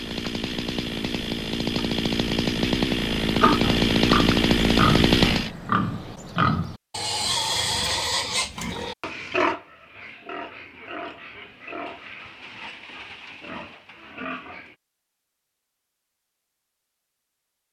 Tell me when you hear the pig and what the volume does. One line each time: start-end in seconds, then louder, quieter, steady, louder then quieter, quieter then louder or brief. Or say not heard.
3.4-14.8 quieter.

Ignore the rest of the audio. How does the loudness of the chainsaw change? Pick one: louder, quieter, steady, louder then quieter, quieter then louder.
louder.